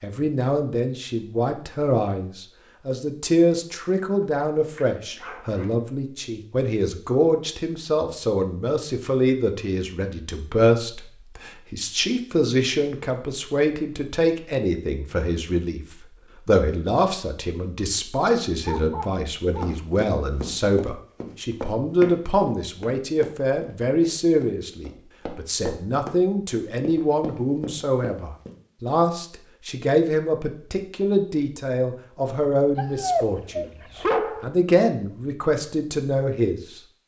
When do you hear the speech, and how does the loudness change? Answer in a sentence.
You can hear the speech from 0.0 to 36.8 s, at a steady volume.